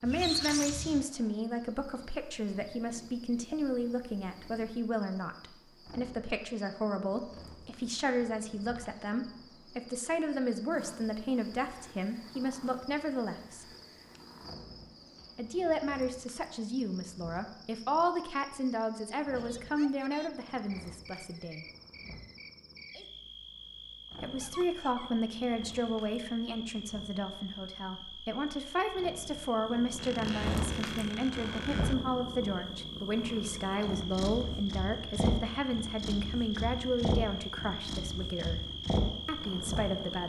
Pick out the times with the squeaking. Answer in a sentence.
The squeaking can be heard from 0.1 to 1.1 s, from 24.4 to 25.1 s and from 29.9 to 31.9 s.